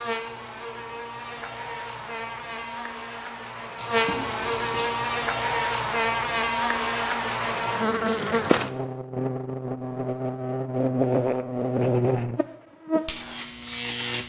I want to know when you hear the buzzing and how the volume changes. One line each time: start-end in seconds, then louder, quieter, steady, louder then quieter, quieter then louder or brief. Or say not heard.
0.0-14.2 louder.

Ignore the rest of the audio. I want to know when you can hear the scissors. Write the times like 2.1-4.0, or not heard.
3.8-5.0.